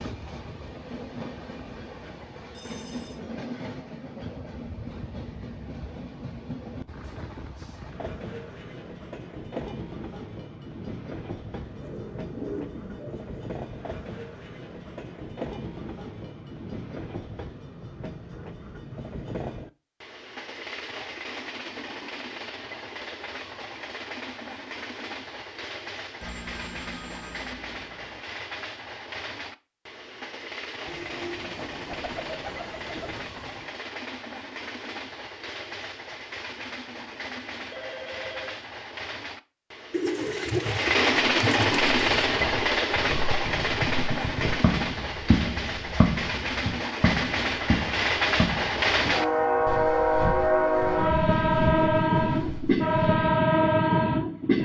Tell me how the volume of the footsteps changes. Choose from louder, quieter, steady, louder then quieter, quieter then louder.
louder then quieter.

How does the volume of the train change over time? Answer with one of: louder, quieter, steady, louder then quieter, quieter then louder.
louder.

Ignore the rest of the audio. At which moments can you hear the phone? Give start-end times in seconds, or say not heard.
2.5-3.2, 26.2-28.2, 37.7-38.6.